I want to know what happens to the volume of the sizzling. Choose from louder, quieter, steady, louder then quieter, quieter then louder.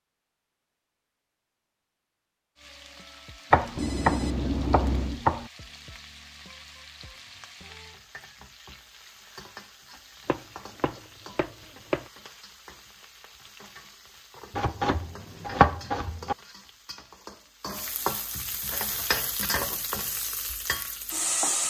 louder.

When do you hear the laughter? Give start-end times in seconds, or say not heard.
not heard.